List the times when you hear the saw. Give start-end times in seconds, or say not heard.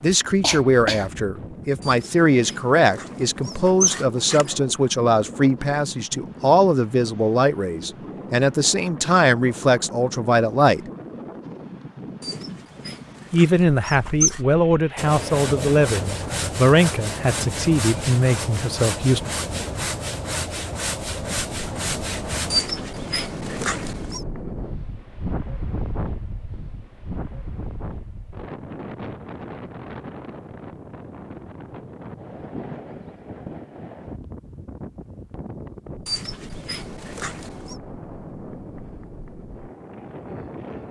14.9-22.6.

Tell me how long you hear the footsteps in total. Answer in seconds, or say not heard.
not heard.